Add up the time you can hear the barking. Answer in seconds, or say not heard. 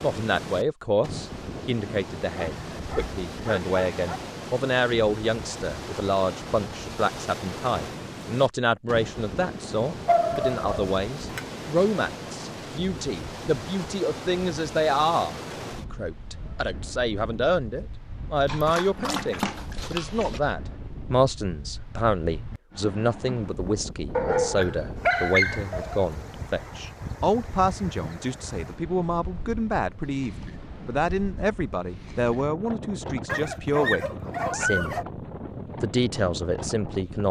9 s.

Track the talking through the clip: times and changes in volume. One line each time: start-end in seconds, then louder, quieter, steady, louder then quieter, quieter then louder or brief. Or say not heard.
0.0-35.0 steady
35.8-37.2 brief.